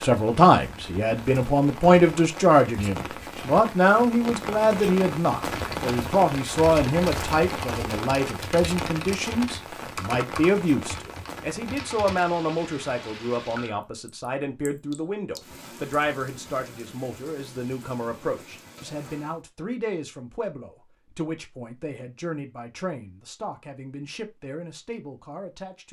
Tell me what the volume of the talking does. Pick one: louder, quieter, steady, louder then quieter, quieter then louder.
quieter.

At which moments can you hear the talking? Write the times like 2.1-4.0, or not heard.
0.0-25.8.